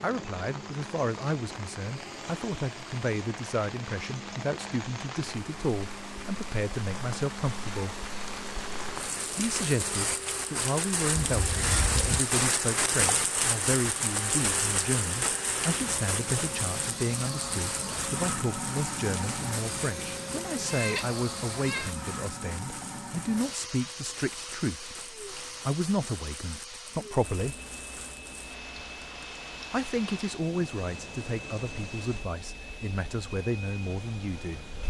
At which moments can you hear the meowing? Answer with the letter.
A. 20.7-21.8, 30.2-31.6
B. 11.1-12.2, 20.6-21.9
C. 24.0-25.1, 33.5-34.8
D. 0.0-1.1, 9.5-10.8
B.